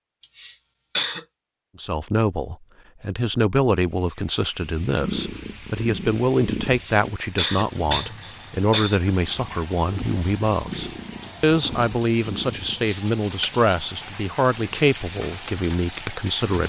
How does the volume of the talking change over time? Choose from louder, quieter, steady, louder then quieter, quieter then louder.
steady.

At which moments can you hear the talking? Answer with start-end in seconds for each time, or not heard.
1.8-16.6.